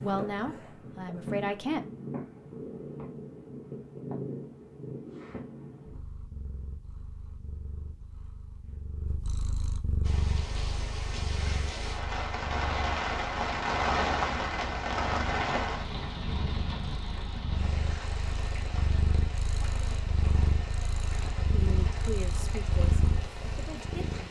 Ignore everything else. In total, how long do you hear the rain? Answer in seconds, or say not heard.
14 s.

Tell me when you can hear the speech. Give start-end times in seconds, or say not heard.
0.0-1.8, 21.5-24.1.